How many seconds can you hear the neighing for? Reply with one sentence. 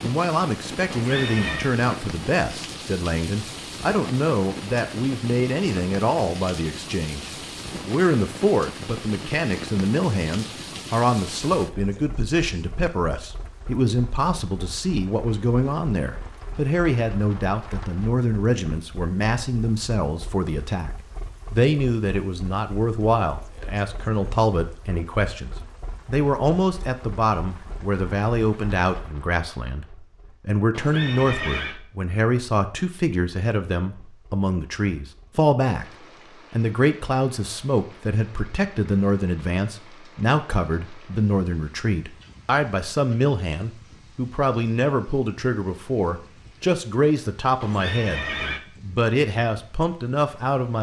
The neighing can be heard for 3 seconds in total.